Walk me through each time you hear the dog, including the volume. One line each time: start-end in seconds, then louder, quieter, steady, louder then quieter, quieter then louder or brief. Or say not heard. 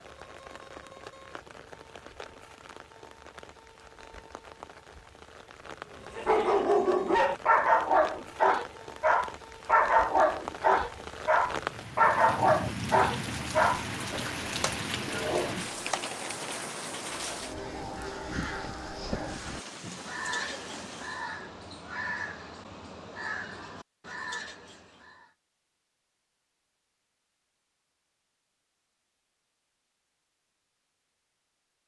6.2-16.1 quieter.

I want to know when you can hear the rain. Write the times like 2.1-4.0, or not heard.
0.0-21.3.